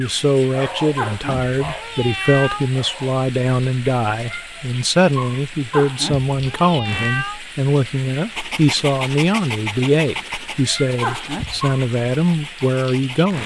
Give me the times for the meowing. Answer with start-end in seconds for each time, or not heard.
0.9-2.7, 5.7-7.4, 11.0-11.7.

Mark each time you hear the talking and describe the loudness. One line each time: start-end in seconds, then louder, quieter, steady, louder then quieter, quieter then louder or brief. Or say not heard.
0.0-13.4 steady.